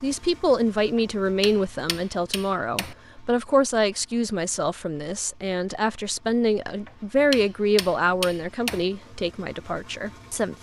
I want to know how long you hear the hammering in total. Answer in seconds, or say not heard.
4 s.